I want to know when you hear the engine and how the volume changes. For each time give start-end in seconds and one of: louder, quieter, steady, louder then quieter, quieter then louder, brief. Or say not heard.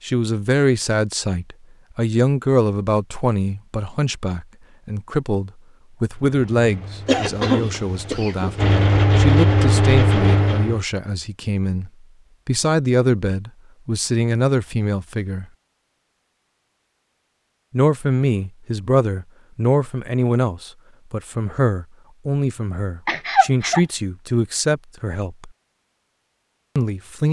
6.0-10.8 louder.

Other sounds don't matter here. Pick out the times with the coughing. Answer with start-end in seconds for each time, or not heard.
7.0-8.6, 23.1-23.8.